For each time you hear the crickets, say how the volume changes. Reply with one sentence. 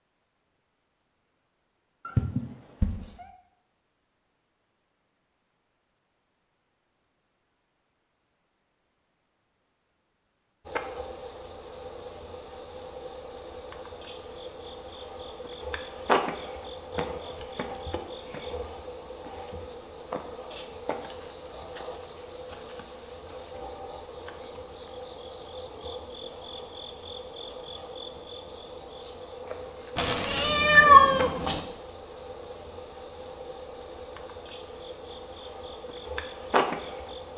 The crickets can be heard from 10.7 to 37.3 s, at a steady volume.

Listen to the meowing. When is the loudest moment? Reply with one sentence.
The loudest moment of the meowing is at 31 seconds.